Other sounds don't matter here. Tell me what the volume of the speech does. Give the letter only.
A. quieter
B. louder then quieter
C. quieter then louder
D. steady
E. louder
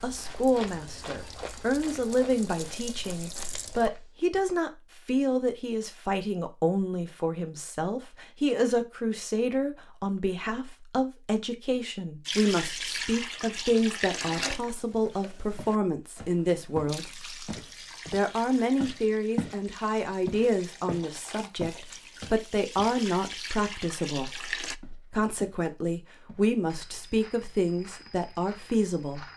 D.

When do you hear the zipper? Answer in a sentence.
The zipper can't be heard in this clip.